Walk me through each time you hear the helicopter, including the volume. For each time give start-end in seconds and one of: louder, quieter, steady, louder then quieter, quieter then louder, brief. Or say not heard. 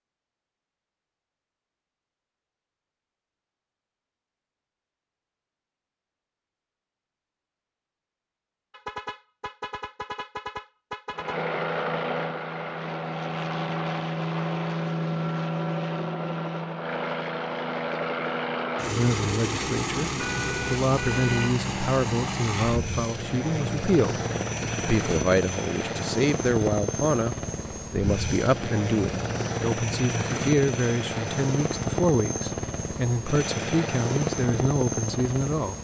11.1-35.7 steady.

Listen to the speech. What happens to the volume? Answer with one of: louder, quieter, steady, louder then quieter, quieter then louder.
steady.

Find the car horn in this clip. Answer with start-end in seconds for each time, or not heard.
8.7-11.4, 20.1-21.6.